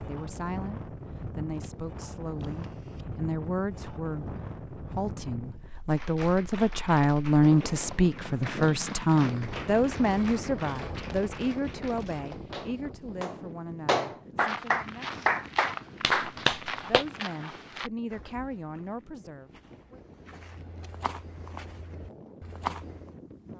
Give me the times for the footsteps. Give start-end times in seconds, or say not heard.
14.3-23.1.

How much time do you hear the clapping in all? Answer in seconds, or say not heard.
11 s.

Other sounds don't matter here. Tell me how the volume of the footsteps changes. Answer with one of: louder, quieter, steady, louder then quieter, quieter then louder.
quieter then louder.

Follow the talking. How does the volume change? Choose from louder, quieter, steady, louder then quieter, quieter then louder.
louder then quieter.